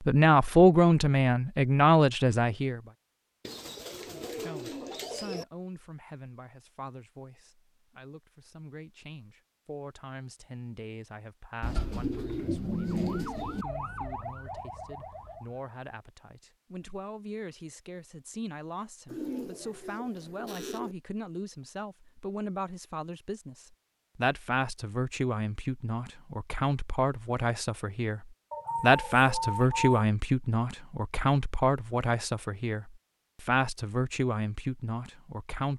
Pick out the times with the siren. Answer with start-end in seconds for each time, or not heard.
12.7-15.7.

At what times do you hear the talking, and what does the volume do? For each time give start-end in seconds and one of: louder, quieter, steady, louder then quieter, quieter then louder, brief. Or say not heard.
0.0-2.8 brief
4.0-35.7 louder.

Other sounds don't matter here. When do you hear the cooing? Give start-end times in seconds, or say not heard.
3.5-5.5, 11.6-13.7, 19.1-20.9, 28.5-30.1.